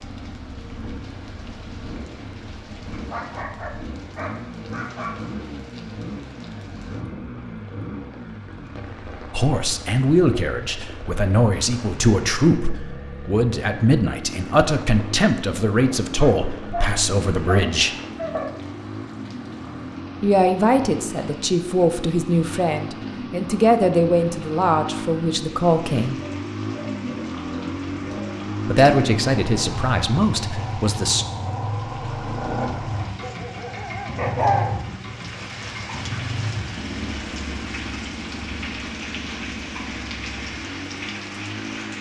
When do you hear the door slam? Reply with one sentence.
The door slam can't be heard in this clip.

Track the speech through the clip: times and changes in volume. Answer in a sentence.
The speech can be heard from 9.3 to 17.9 s, at a steady volume; from 20.2 to 26.1 s, at a steady volume; and briefly from 28.6 to 31.2 s.